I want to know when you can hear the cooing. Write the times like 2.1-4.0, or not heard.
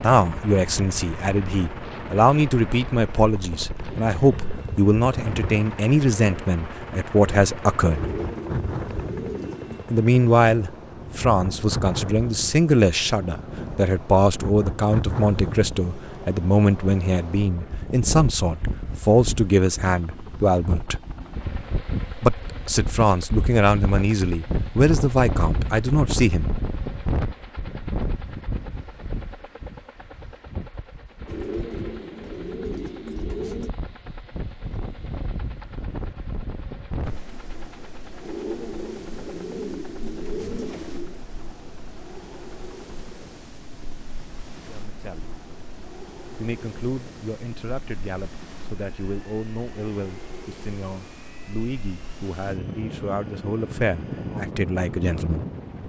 7.9-9.8, 31.2-33.7, 38.2-41.2.